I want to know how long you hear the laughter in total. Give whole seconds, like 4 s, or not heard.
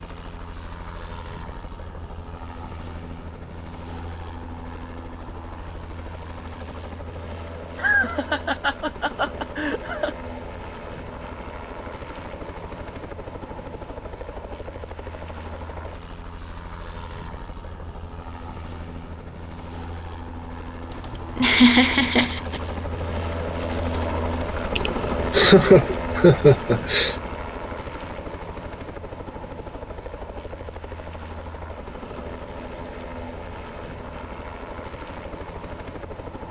6 s.